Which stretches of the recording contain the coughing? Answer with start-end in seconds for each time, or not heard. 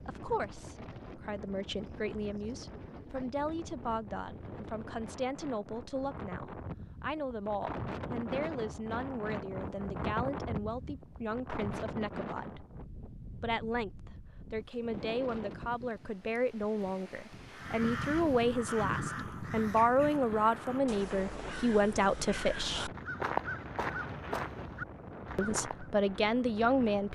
not heard.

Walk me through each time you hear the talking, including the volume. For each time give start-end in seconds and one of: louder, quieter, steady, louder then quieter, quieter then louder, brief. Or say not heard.
0.0-12.7 steady
13.4-22.9 louder
25.4-27.1 brief.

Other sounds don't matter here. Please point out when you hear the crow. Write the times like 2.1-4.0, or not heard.
17.5-25.9.